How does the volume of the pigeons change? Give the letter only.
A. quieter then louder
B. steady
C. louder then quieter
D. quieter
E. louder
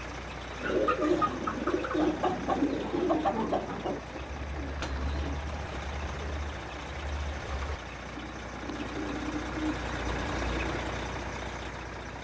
A.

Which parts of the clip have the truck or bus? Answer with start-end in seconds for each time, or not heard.
0.0-12.1.